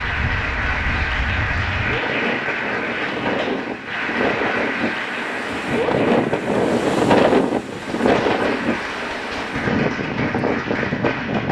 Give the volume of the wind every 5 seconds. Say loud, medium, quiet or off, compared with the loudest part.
medium, loud, loud.